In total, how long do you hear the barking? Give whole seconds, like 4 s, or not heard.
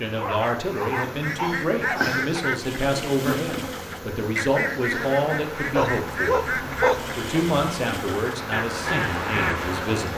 4 s.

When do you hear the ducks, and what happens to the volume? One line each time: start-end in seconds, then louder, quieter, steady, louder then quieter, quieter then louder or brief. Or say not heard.
0.9-9.7 steady.